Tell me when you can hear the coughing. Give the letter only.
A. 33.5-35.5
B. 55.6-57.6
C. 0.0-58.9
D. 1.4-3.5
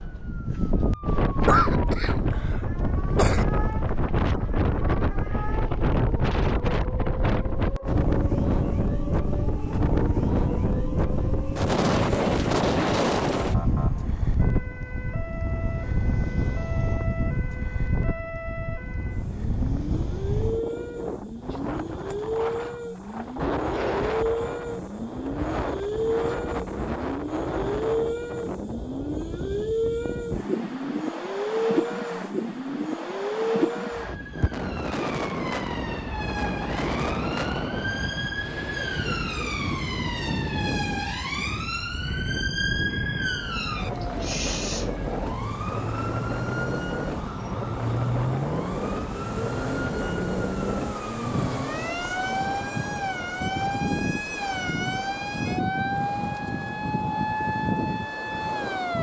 D.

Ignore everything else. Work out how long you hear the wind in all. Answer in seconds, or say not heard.
59 s.